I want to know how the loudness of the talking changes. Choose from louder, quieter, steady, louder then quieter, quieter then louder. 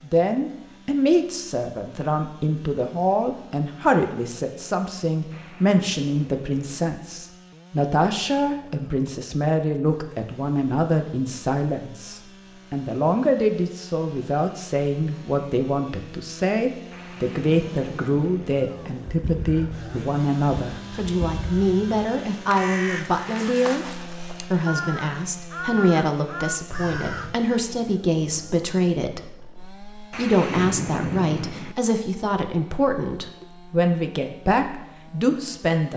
steady.